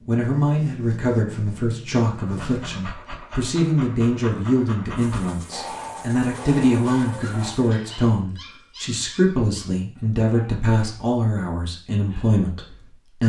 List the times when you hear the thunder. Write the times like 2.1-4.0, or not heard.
not heard.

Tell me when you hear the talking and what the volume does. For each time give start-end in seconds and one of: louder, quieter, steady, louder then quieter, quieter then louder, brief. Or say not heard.
0.1-13.2 steady.